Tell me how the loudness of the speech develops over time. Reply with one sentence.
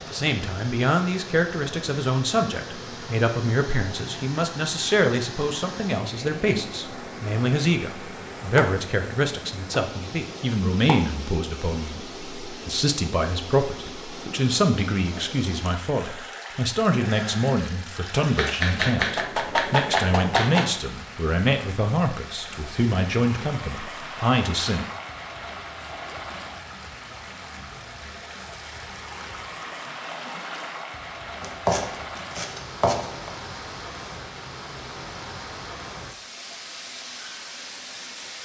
The volume of the speech stays about the same.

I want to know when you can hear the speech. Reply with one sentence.
You can hear the speech from 0.0 to 24.9 s.